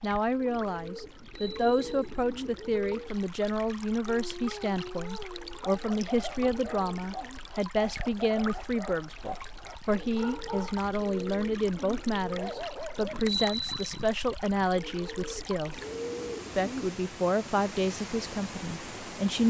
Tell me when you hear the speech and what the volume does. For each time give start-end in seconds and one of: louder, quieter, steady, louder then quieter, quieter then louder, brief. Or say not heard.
0.0-15.8 steady
16.6-19.4 brief.